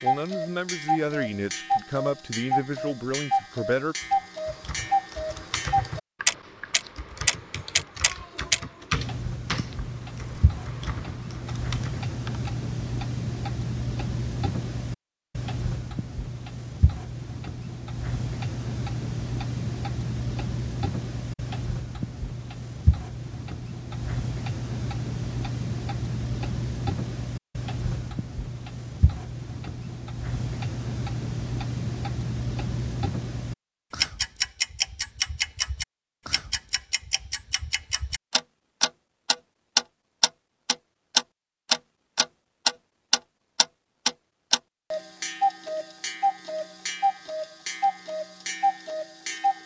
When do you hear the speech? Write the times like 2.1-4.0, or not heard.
0.0-4.0.